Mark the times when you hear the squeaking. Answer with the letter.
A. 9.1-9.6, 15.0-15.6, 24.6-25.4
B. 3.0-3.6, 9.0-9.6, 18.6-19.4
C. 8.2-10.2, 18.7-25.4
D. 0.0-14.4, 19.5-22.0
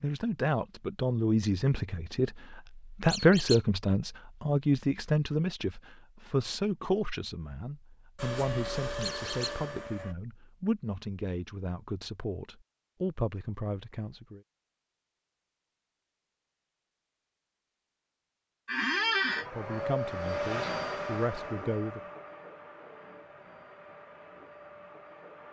B.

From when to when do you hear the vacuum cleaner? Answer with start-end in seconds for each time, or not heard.
8.2-10.2, 18.7-25.4.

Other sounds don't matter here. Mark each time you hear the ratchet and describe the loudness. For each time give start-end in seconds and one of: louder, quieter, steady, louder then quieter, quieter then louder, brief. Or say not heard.
not heard.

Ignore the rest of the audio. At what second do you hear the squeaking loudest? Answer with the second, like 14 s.
19 s.